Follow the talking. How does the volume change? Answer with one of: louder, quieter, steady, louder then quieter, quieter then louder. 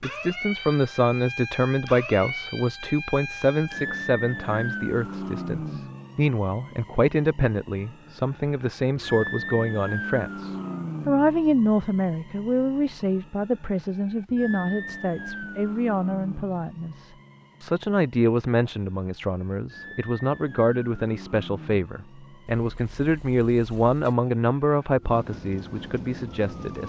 steady.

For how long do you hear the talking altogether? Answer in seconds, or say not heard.
27 s.